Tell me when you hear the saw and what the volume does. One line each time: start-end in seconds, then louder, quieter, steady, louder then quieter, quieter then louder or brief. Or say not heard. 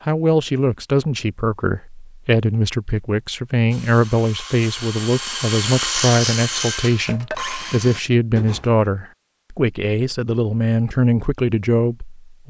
3.7-8.7 louder then quieter.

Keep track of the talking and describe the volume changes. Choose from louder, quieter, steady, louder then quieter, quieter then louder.
steady.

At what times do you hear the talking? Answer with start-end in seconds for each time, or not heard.
0.1-12.4.